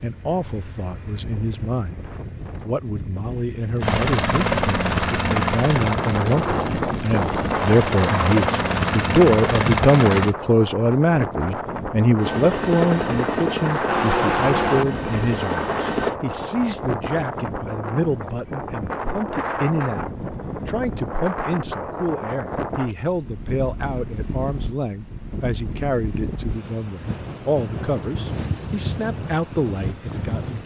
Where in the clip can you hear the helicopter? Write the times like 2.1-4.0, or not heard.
3.8-10.3, 12.2-16.1.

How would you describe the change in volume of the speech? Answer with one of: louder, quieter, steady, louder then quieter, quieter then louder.
louder then quieter.